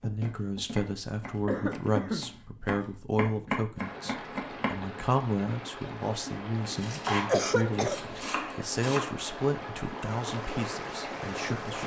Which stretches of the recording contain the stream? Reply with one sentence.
The stream can be heard from 3.8 to 11.8 s.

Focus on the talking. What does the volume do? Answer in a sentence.
The volume of the talking stays about the same.